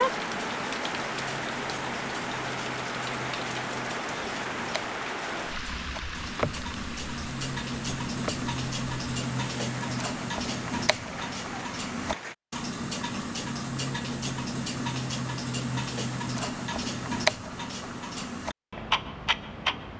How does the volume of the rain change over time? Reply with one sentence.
The loudness of the rain goes down.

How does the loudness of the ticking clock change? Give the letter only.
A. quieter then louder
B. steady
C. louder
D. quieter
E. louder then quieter
C.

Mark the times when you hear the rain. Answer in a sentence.
You can hear the rain from 0.0 to 12.3 s.